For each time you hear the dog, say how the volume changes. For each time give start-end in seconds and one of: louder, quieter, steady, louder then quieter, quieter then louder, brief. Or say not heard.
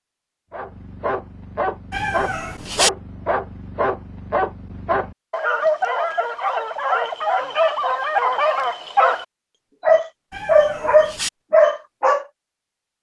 0.5-12.2 louder.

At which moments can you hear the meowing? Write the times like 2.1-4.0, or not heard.
1.9-2.9, 10.3-11.3.